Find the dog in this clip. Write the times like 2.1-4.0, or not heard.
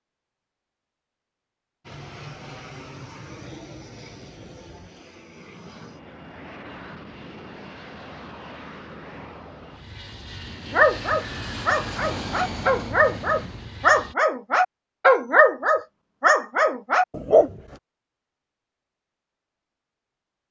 10.7-17.5.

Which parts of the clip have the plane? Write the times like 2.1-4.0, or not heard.
1.8-14.2.